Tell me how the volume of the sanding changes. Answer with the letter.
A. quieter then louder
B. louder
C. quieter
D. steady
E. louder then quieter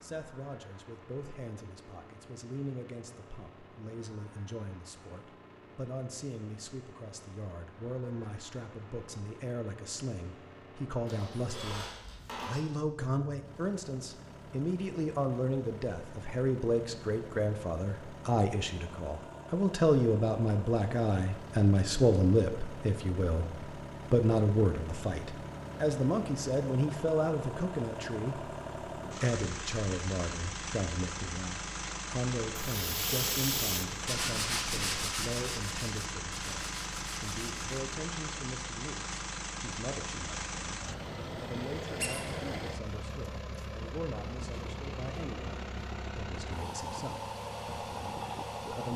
C.